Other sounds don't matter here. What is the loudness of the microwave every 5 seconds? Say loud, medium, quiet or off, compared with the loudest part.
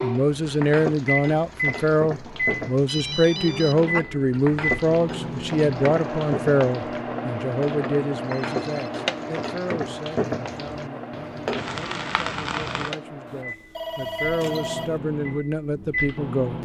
loud, loud, medium, loud.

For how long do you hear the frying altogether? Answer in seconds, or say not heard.
13 s.